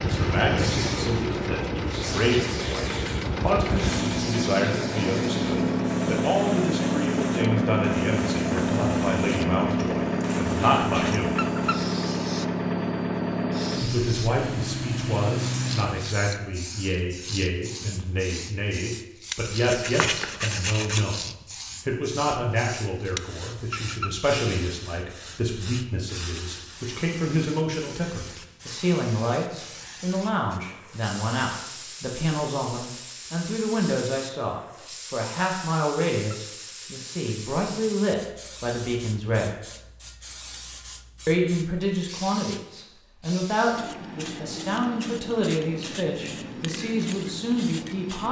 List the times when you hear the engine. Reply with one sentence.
The engine can be heard from 0.0 to 16.2 s.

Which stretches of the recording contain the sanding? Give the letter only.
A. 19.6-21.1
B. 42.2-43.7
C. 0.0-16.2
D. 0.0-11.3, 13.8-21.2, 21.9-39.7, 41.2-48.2
A.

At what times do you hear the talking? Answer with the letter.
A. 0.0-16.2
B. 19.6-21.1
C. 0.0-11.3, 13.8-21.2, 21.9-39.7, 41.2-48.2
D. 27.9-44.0
C.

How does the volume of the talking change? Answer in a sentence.
The loudness of the talking stays about the same.